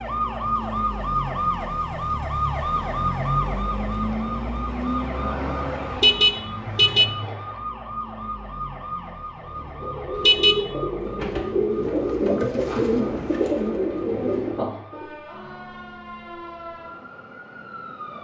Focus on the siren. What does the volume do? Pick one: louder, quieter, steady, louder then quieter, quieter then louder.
quieter.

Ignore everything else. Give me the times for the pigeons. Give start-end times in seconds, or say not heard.
9.4-15.2.